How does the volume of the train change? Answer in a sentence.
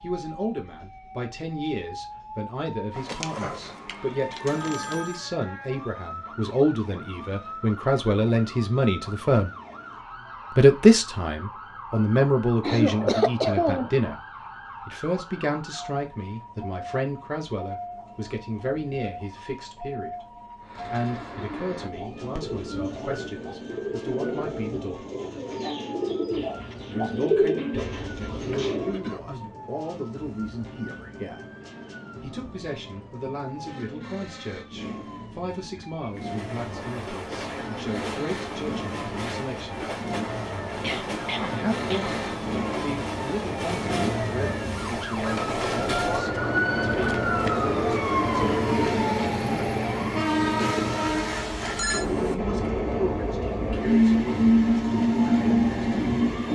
The loudness of the train goes up.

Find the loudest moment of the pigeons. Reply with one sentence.
The loudest moment of the pigeons is at 27 seconds.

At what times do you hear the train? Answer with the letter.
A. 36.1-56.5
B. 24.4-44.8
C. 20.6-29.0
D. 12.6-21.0
A.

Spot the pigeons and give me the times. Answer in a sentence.
The pigeons can be heard from 20.6 to 29.0 s.